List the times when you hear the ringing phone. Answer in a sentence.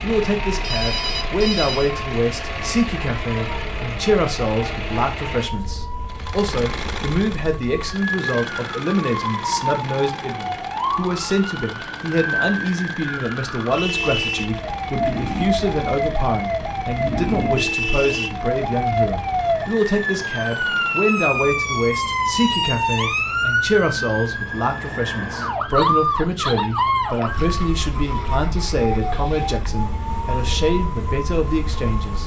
You can hear the ringing phone from 0.6 to 1.9 s.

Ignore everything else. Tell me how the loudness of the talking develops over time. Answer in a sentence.
The loudness of the talking stays about the same.